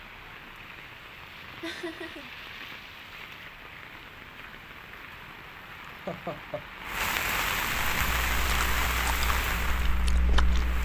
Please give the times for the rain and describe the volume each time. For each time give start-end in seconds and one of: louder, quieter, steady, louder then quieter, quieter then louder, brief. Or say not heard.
0.0-10.7 louder.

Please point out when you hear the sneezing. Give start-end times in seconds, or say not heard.
not heard.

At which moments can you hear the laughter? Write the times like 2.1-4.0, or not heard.
1.6-2.3, 5.9-6.7.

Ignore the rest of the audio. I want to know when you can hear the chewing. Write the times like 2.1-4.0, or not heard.
7.8-10.7.